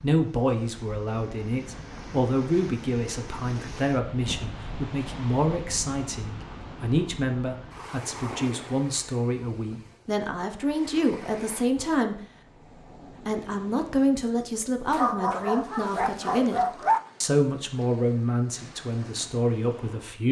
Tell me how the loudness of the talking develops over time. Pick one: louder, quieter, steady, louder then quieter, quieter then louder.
steady.